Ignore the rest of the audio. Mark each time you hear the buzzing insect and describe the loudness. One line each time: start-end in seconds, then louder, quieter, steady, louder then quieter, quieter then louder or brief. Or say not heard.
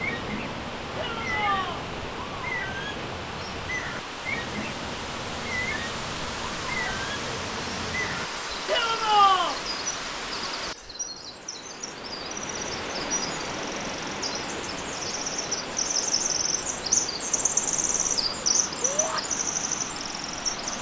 not heard.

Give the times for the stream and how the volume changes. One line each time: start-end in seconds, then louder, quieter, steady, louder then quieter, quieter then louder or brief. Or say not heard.
0.0-20.7 steady.